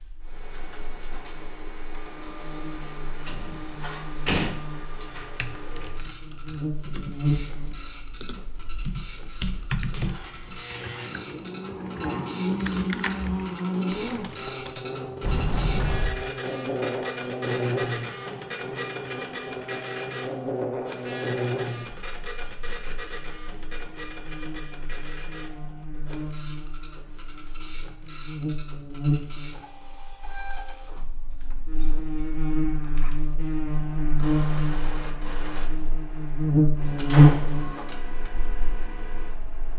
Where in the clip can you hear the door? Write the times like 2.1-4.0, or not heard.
3.2-4.5, 15.2-16.2, 36.9-37.9.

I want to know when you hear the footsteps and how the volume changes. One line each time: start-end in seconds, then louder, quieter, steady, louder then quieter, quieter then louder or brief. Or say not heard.
not heard.